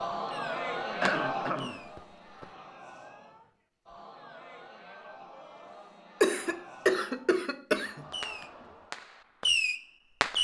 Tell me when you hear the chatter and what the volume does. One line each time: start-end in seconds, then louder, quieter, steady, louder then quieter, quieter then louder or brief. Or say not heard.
0.0-9.1 quieter.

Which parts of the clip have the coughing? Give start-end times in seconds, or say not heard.
0.9-2.5, 6.2-8.4.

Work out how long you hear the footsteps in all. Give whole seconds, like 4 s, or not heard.
not heard.